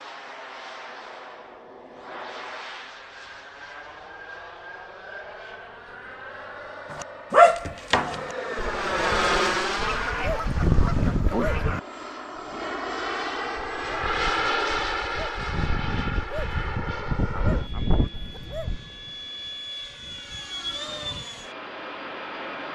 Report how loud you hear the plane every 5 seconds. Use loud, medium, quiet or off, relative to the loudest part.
medium, loud, loud, medium, medium.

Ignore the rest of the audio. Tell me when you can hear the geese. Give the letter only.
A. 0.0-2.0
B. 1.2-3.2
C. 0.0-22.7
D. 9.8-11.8
D.